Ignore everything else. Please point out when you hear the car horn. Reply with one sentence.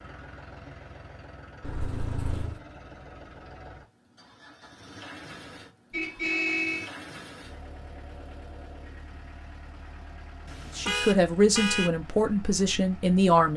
You can hear the car horn from 1.6 to 2.6 s, from 5.9 to 6.9 s and from 10.4 to 11.9 s.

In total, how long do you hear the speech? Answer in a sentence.
The speech can be heard for 3 seconds in total.